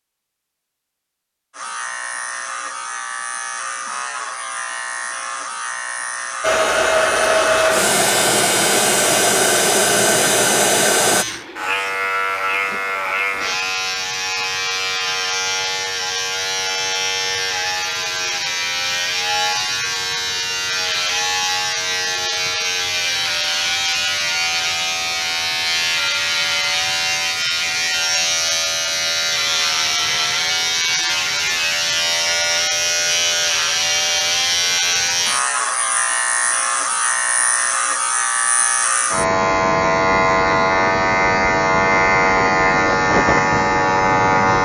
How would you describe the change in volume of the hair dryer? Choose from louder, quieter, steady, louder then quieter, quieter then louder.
steady.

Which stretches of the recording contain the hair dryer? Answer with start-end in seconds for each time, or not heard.
6.4-11.2.